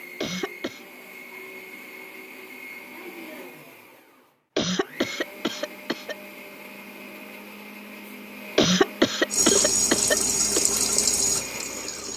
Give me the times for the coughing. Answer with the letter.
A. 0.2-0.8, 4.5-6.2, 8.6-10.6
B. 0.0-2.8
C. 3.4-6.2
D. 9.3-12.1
A.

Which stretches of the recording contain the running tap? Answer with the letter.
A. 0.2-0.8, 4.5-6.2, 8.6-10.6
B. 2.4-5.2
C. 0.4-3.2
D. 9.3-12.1
D.